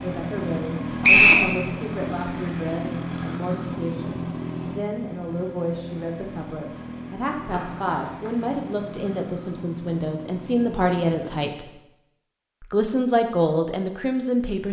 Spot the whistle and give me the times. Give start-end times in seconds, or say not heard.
1.0-1.4, 7.5-8.3.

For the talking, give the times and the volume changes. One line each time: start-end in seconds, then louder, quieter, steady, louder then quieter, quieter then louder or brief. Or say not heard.
0.0-11.8 louder
12.6-14.6 brief.